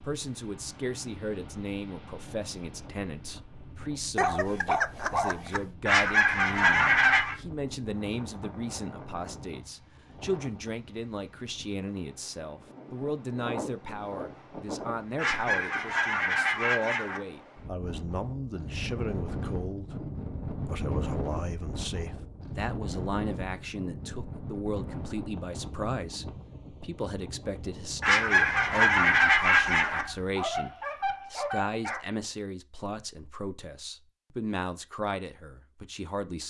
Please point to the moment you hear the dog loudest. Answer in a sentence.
The volume of the dog peaks at 5 seconds.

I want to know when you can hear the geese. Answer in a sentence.
You can hear the geese from 5.8 to 7.3 s, from 15.2 to 17.2 s and from 28.0 to 30.1 s.